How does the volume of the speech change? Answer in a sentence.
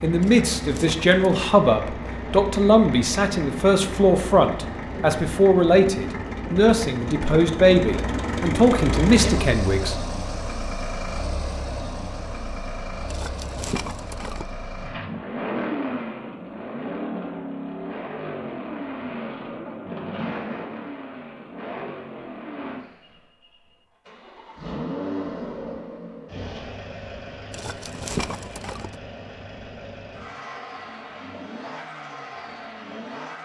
The volume of the speech stays about the same.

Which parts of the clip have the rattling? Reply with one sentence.
The rattling can be heard from 0.2 to 1.2 s, from 13.1 to 14.4 s and from 27.5 to 28.9 s.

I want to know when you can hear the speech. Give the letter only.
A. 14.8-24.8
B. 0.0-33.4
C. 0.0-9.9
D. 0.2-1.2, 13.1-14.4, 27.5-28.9
C.